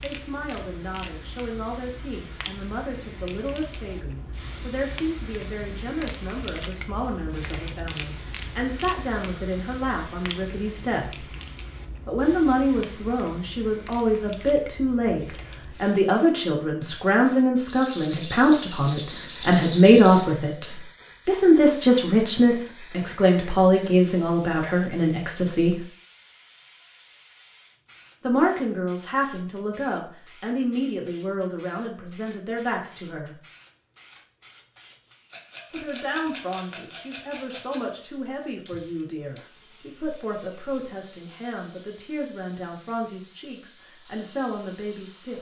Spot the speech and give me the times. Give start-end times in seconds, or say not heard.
0.0-11.2, 12.1-25.9, 28.2-33.4, 35.7-45.3.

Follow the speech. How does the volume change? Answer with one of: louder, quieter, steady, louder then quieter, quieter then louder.
louder then quieter.